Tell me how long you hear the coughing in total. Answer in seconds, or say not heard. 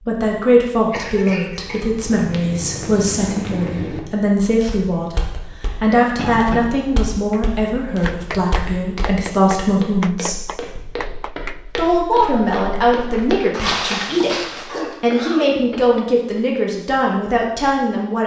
3 s.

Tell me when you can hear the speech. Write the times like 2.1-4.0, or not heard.
0.0-10.3, 11.8-18.2.